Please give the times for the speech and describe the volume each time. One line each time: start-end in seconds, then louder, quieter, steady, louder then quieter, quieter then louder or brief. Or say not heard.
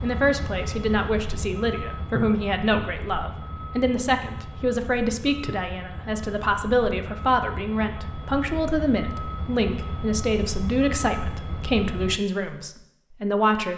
0.0-13.7 steady.